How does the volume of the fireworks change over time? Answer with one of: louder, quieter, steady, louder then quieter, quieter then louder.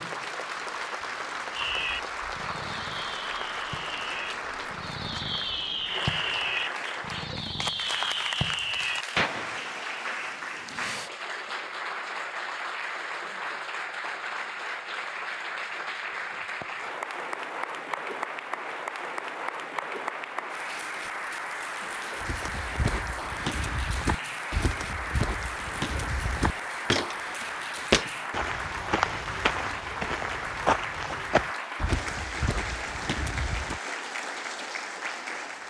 louder.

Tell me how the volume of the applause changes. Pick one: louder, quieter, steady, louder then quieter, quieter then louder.
steady.